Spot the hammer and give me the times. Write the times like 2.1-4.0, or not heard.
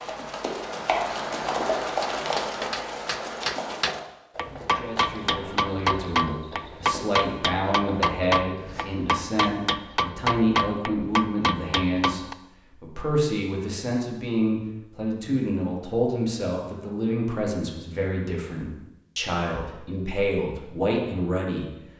2.0-12.3.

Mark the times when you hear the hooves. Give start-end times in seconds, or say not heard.
0.0-8.8.